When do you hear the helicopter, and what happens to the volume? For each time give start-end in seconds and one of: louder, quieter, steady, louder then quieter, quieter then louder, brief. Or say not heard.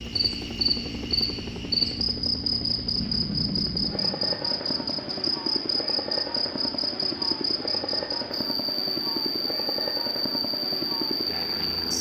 0.0-11.9 steady.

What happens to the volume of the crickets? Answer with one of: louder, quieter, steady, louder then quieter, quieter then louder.
steady.